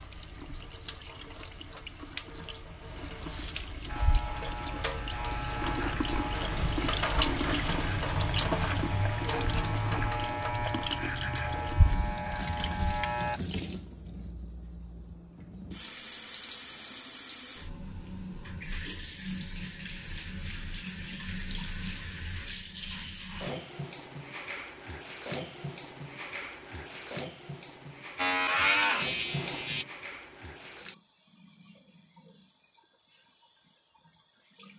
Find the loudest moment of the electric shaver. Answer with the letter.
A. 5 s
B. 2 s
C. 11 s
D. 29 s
D.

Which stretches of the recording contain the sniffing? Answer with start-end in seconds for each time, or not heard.
3.2-4.1.